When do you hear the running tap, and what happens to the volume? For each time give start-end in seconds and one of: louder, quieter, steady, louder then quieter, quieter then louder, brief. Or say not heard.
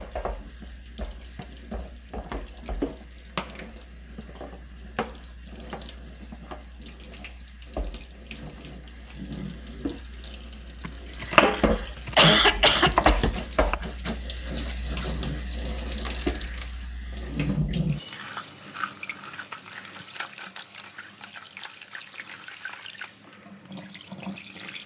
0.0-24.8 louder then quieter.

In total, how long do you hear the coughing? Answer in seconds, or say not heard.
2 s.